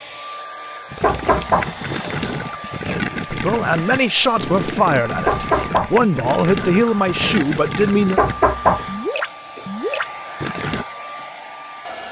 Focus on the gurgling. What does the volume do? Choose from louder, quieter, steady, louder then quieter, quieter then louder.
steady.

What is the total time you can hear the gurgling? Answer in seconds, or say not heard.
10 s.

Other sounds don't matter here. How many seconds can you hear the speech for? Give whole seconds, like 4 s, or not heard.
5 s.